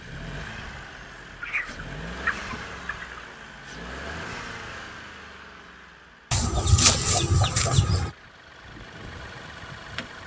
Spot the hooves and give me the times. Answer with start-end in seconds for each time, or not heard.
not heard.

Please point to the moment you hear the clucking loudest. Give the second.
7 s.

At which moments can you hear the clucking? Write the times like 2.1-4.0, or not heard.
1.4-3.3, 6.3-8.1.